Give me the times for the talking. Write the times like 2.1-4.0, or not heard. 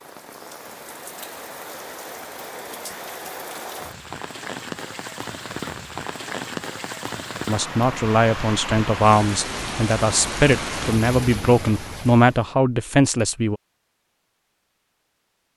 7.5-13.6.